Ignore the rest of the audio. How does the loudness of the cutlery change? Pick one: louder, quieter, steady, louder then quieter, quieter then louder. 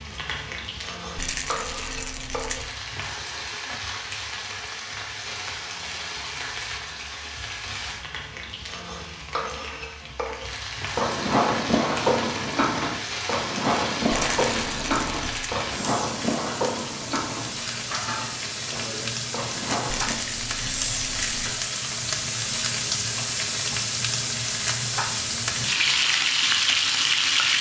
quieter.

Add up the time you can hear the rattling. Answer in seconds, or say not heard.
5 s.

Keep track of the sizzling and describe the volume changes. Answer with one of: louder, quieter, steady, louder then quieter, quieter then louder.
louder.